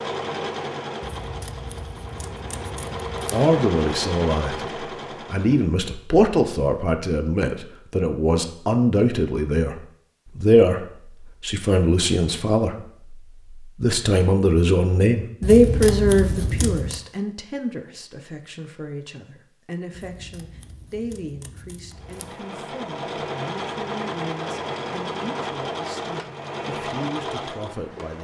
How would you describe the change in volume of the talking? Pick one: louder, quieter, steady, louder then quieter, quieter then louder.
quieter.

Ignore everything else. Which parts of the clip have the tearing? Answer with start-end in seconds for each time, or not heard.
not heard.